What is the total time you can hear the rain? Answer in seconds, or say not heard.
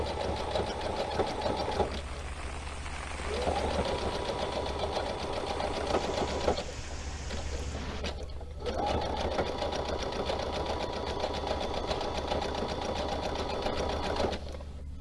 8 s.